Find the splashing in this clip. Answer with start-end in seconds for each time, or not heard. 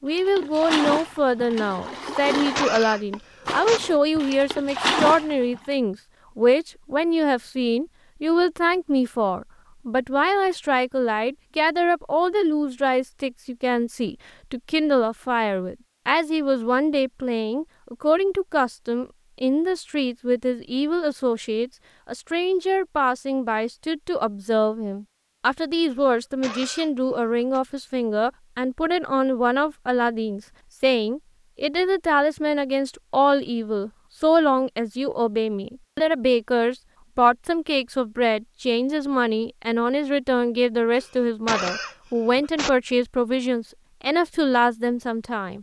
0.1-5.6.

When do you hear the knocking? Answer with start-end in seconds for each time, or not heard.
not heard.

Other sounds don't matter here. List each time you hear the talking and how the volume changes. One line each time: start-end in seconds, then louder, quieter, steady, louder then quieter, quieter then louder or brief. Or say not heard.
0.0-45.5 steady.